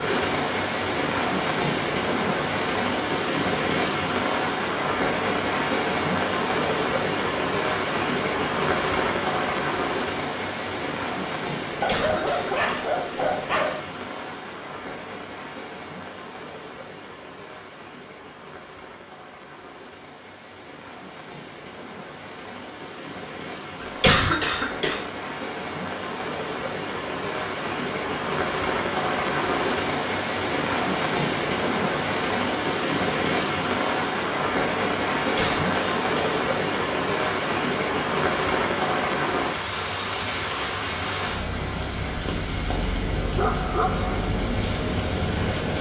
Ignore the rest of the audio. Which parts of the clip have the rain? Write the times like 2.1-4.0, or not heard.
0.0-45.7.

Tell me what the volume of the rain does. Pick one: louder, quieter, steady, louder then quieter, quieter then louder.
quieter then louder.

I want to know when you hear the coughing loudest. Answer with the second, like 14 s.
24 s.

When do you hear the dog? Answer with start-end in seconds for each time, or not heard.
11.8-13.8, 43.4-44.3.